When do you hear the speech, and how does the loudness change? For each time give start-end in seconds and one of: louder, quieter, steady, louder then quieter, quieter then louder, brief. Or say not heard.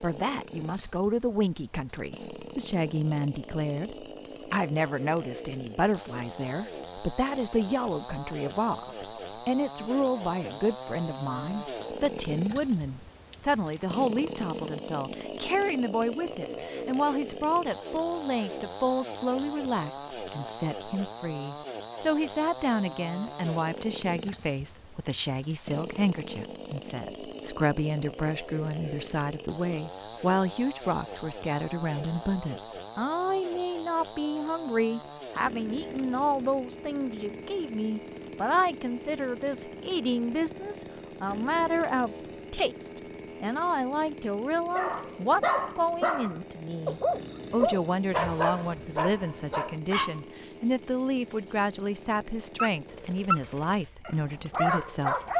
0.0-55.1 steady.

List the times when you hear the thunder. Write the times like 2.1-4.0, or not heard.
not heard.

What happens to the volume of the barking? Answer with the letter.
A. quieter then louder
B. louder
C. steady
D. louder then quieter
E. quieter
A.